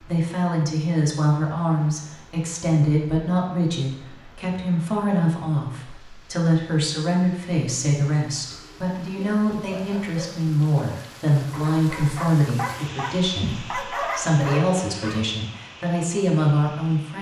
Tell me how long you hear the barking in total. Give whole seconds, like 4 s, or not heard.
7 s.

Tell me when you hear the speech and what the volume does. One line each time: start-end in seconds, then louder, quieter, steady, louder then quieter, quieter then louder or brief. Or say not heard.
0.0-17.1 steady.